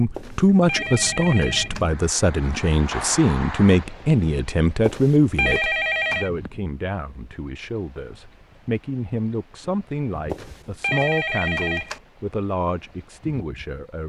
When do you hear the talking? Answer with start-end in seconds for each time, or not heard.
0.0-14.0.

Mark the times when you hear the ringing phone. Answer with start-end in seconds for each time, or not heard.
0.1-1.9, 4.8-6.3, 10.3-12.0.